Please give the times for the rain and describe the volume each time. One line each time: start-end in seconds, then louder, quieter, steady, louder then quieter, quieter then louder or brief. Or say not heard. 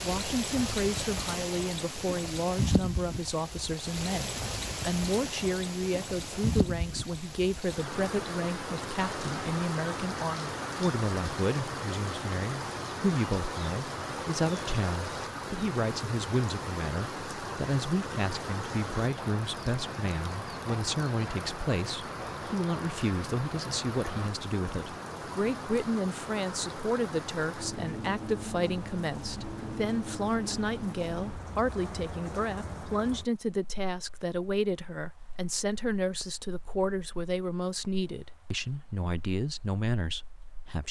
0.0-40.8 quieter.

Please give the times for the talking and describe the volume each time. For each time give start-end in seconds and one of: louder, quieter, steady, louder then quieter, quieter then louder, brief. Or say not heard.
0.0-40.8 steady.